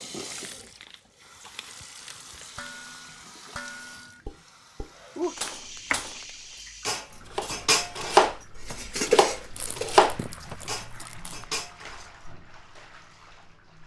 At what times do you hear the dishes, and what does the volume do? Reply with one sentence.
The dishes can be heard from 2.5 to 12.2 s, getting louder then quieter.